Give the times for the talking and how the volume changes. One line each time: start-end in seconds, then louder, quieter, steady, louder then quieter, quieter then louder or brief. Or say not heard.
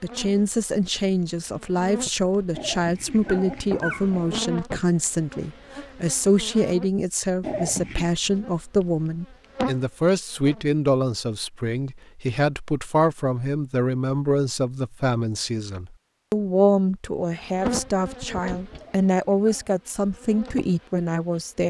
0.0-21.6 steady.